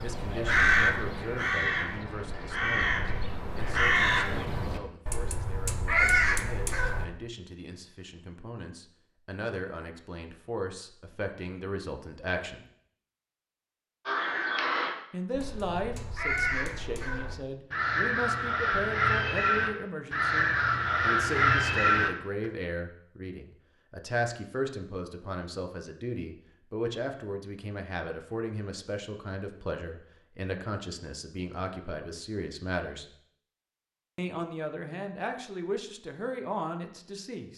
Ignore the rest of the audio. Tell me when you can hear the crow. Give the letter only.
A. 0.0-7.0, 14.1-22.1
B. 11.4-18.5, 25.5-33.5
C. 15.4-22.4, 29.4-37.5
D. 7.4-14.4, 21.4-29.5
A.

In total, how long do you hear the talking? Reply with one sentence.
You can hear the talking for 34 seconds altogether.